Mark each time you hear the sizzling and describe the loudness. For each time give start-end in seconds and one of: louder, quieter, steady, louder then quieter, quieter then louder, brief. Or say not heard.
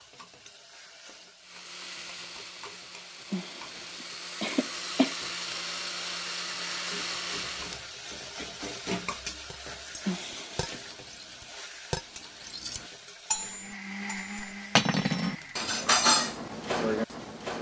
0.0-17.5 louder then quieter.